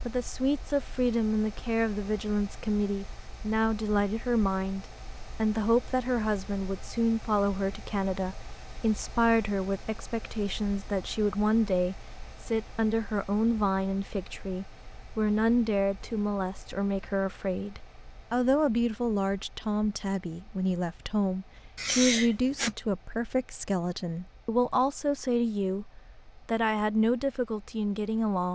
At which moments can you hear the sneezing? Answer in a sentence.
The sneezing can be heard from 21.8 to 22.8 s.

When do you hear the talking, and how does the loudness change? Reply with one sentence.
The talking can be heard from 0.0 to 28.5 s, at a steady volume.